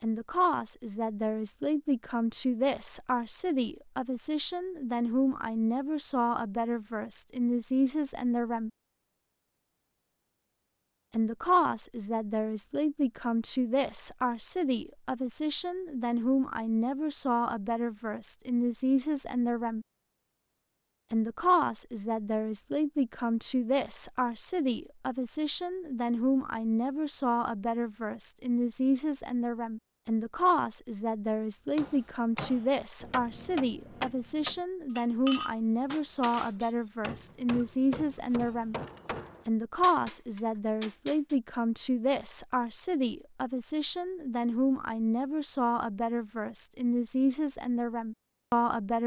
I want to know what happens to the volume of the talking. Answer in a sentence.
The loudness of the talking stays about the same.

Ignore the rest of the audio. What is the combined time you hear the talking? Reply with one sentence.
The talking can be heard for 45 seconds in total.